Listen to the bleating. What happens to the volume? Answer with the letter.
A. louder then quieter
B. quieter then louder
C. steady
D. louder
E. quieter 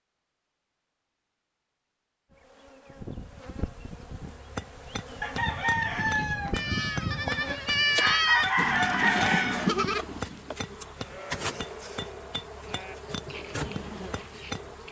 E.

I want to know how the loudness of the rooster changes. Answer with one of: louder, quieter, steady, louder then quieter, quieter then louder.
quieter then louder.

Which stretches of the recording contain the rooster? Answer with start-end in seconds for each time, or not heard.
5.2-9.7.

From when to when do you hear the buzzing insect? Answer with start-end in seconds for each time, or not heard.
2.3-14.8.